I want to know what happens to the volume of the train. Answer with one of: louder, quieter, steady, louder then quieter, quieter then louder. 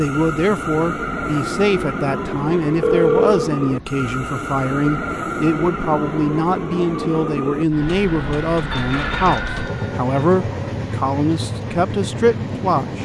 steady.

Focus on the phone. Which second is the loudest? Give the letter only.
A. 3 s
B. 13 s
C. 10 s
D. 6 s
A.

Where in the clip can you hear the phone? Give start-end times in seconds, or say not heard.
2.8-3.5, 8.7-10.2.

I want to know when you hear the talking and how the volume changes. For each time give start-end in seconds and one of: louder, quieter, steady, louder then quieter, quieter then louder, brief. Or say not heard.
0.0-13.0 steady.